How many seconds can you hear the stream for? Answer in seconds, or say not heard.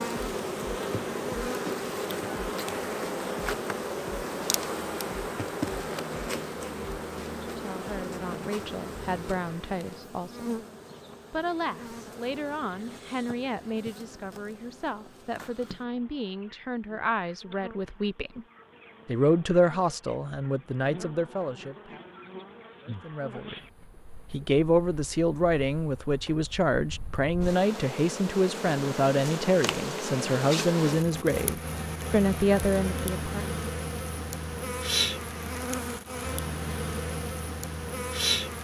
not heard.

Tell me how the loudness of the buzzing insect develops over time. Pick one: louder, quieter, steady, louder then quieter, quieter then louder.
quieter then louder.